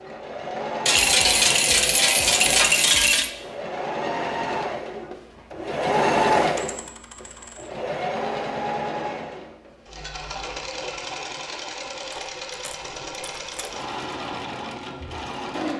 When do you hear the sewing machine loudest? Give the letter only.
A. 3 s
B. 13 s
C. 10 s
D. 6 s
D.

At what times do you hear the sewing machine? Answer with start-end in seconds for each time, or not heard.
0.0-15.7.